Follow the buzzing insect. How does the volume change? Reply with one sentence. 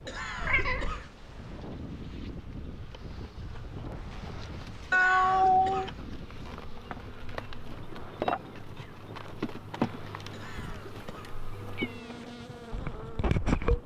The volume of the buzzing insect goes up.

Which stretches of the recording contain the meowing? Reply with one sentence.
You can hear the meowing from 0.4 to 1.0 s, from 4.9 to 5.9 s and from 10.6 to 12.1 s.